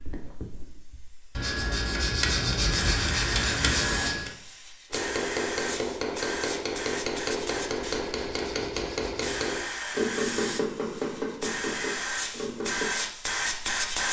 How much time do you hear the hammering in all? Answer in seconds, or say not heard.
8 s.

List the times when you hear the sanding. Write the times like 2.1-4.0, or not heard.
1.4-4.3, 7.7-9.5.